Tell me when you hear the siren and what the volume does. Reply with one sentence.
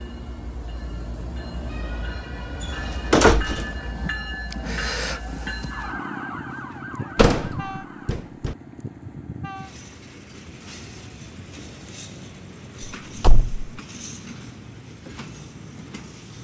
The siren can be heard from 1.6 to 8.2 s, getting louder then quieter.